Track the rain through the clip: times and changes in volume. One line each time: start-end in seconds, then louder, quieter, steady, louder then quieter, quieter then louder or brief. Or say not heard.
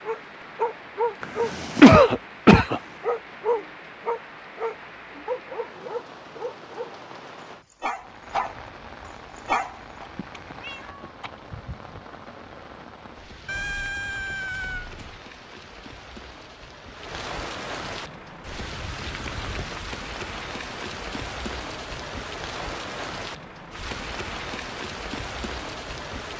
0.0-26.3 louder.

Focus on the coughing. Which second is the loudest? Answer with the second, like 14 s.
2 s.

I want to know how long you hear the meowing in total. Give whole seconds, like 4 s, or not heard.
3 s.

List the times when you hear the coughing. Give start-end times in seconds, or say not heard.
1.2-2.8, 11.2-12.0, 19.0-19.5.